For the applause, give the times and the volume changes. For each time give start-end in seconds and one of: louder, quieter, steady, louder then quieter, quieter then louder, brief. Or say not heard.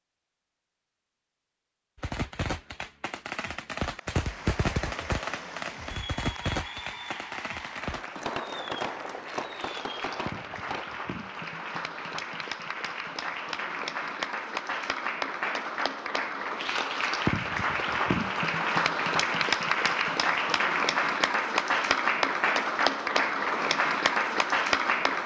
4.0-25.2 louder.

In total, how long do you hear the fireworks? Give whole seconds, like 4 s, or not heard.
9 s.